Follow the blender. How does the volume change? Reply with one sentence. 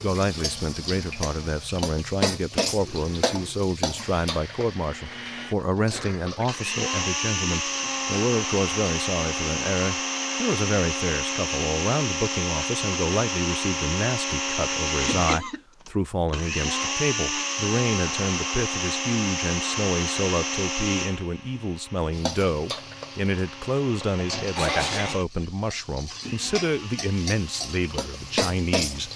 The volume of the blender goes up, then down.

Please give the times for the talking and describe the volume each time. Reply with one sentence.
You can hear the talking from 0.0 to 29.1 s, at a steady volume.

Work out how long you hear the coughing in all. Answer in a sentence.
You can hear the coughing for 2 seconds altogether.